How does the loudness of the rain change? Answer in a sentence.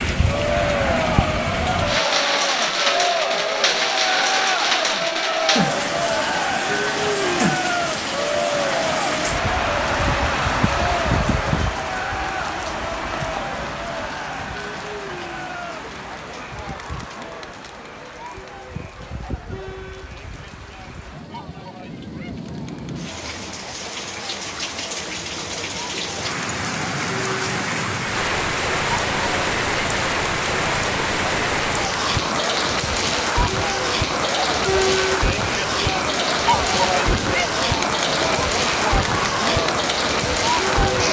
The loudness of the rain goes down, then up.